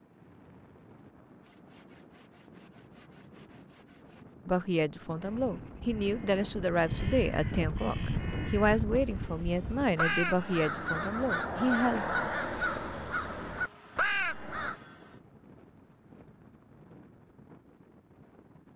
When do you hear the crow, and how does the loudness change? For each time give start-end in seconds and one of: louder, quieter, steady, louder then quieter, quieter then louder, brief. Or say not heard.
5.2-14.8 louder.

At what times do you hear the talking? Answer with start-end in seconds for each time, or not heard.
4.5-12.1.